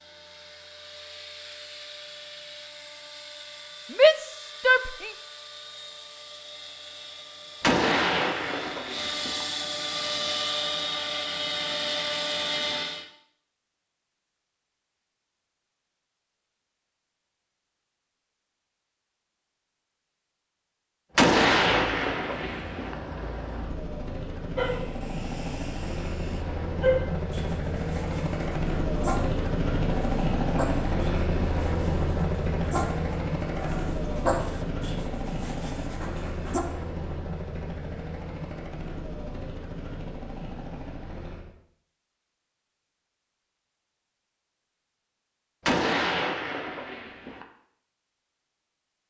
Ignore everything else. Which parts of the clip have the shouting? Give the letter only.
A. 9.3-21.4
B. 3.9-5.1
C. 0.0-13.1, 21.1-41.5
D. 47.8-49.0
B.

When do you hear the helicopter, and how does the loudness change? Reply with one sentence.
You can hear the helicopter from 0.0 to 13.1 s, getting louder; and from 21.1 to 41.5 s, getting louder then quieter.